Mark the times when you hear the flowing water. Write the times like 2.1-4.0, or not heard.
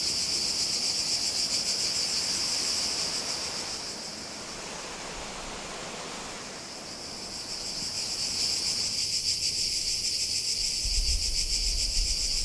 0.0-9.1.